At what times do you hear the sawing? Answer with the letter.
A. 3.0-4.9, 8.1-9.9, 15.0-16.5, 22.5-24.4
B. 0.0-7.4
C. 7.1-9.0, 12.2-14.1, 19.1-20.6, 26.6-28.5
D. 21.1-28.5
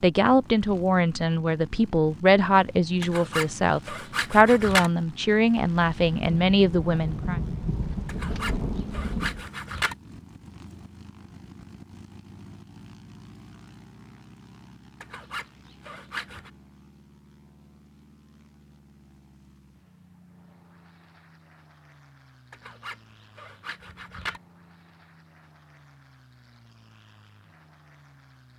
A.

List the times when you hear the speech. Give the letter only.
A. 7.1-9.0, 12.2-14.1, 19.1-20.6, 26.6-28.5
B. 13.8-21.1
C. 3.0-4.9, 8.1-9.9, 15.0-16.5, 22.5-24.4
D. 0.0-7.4
D.